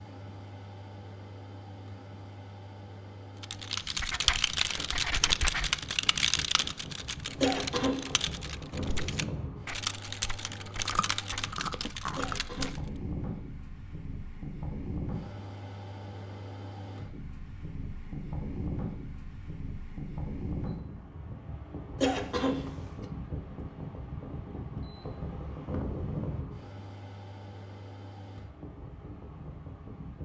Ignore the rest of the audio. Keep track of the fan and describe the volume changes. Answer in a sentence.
The loudness of the fan goes up.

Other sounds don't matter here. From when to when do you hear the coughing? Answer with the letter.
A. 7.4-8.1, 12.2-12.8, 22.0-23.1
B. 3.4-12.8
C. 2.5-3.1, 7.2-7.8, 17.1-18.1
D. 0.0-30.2
A.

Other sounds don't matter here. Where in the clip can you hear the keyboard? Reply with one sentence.
The keyboard can be heard from 3.4 to 12.8 s.